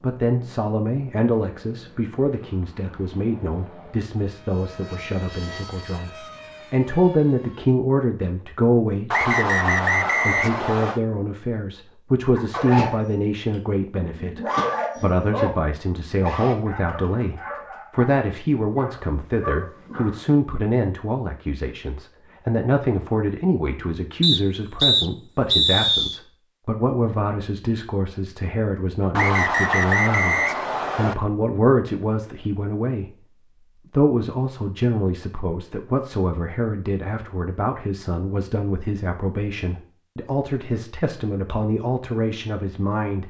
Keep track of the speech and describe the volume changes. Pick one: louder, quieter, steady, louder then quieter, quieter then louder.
steady.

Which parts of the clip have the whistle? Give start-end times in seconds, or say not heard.
9.1-11.0, 24.2-26.2, 29.1-31.1.